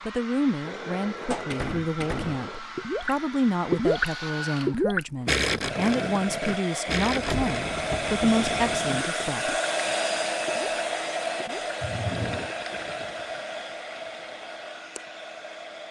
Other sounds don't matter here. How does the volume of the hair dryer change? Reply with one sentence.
The loudness of the hair dryer goes up, then down.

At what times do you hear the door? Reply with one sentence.
The door can be heard from 0.6 to 2.6 s, from 6.8 to 8.5 s and from 11.8 to 12.5 s.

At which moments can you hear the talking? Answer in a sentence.
You can hear the talking from 0.1 to 9.6 s.